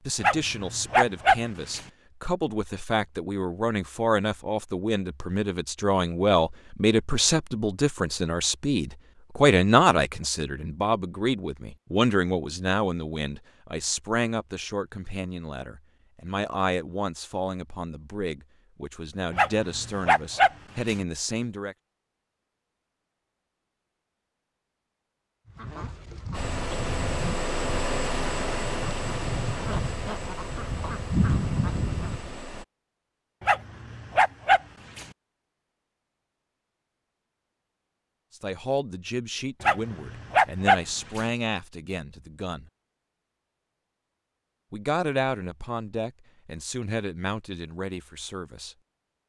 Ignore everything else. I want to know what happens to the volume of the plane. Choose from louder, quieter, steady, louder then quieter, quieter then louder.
quieter.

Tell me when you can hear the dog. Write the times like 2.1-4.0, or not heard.
0.2-1.8, 19.3-20.9, 33.4-35.0, 39.6-41.2.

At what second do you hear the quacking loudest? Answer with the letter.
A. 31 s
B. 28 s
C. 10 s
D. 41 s
A.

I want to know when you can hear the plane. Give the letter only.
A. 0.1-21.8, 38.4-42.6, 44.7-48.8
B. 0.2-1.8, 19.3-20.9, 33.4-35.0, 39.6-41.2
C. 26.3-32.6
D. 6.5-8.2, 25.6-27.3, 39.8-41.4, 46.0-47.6
C.